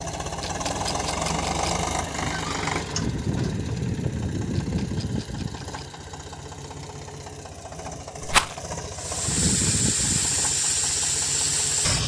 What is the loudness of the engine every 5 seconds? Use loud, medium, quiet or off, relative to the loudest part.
loud, medium, medium.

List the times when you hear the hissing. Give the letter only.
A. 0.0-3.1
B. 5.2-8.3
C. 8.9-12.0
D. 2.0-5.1
C.